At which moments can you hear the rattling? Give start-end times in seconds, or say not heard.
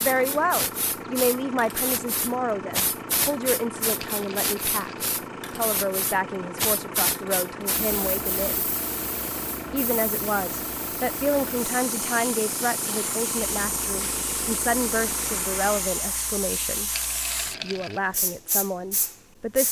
4.0-5.0, 16.9-18.0.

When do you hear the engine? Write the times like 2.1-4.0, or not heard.
0.0-15.9.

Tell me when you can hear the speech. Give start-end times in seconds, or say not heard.
0.0-8.7, 9.7-16.9, 17.6-19.6.